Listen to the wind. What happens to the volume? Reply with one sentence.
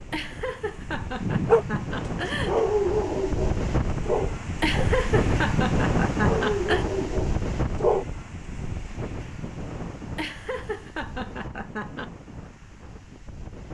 The volume of the wind goes up, then down.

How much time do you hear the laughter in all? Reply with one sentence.
You can hear the laughter for 7 seconds altogether.